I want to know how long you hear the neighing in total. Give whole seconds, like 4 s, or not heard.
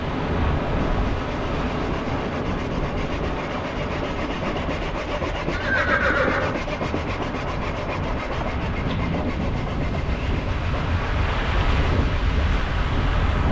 2 s.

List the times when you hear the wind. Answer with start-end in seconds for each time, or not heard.
0.0-13.4.